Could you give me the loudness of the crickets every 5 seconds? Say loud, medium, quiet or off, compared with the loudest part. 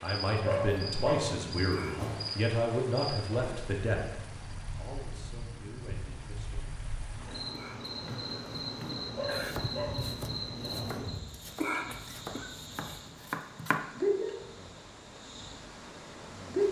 medium, medium, loud, loud.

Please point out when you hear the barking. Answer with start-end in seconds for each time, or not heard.
0.5-2.3, 9.2-11.0.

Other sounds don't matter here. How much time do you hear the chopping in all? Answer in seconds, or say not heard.
6 s.